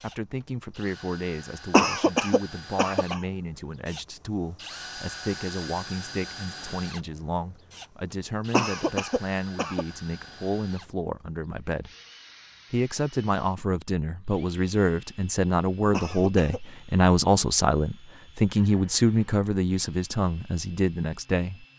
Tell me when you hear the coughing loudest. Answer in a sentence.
The loudest moment of the coughing is at 2 seconds.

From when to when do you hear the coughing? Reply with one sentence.
You can hear the coughing from 1.7 to 3.2 s, from 8.5 to 9.8 s and from 15.9 to 16.6 s.